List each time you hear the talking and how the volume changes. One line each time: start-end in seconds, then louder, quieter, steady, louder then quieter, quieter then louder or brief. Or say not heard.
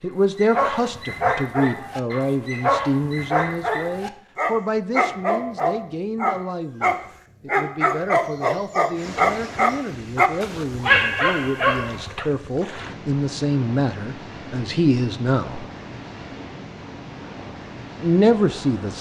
0.0-15.7 quieter then louder
18.0-18.9 brief.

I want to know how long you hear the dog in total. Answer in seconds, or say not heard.
12 s.